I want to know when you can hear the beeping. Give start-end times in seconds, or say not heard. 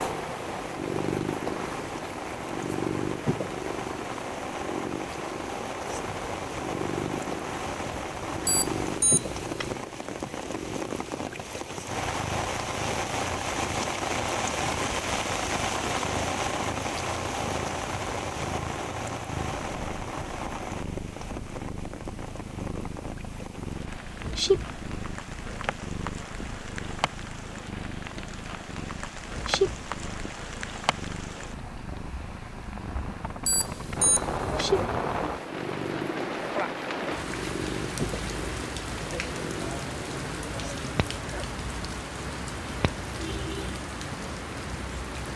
8.4-9.8, 33.5-34.7.